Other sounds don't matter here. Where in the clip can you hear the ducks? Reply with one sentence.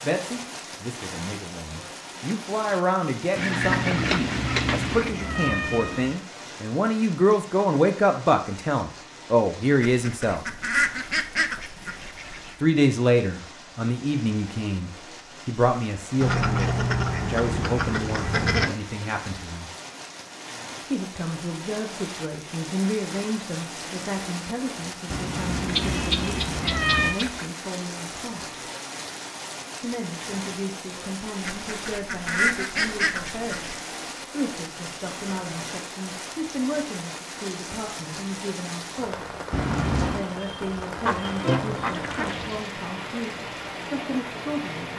The ducks can be heard from 3.4 to 5.2 s, from 9.8 to 12.6 s, from 16.2 to 18.8 s, from 25.6 to 27.4 s, from 31.4 to 33.8 s and from 41.0 to 42.6 s.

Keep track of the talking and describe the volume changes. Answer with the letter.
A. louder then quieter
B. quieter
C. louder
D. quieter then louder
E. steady
B.